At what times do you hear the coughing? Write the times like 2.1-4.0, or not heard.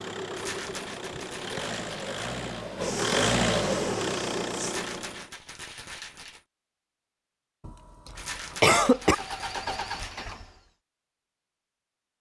7.7-9.2.